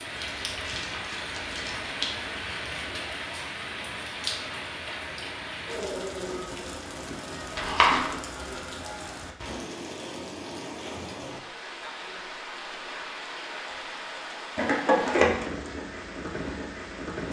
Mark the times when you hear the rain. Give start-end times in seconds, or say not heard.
0.0-17.2.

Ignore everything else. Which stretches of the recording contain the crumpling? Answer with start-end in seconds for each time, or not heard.
0.2-2.3, 7.5-8.1, 14.6-15.4.